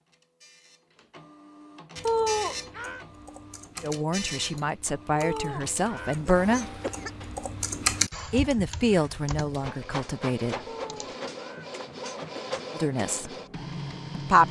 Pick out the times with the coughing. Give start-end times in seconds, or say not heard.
2.0-3.0, 5.2-7.1, 10.7-12.6.